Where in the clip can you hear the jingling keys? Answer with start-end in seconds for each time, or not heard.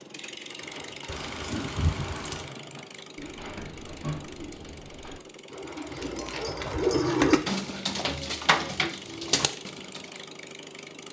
1.1-2.5, 6.0-7.5.